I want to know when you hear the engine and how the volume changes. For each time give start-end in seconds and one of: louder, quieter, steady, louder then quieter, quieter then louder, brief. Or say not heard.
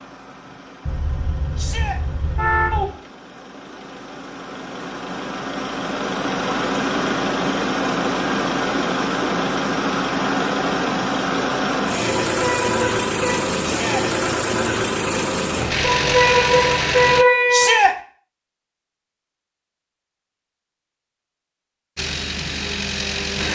0.0-17.2 louder
21.9-23.5 brief.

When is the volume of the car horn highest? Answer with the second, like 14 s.
17 s.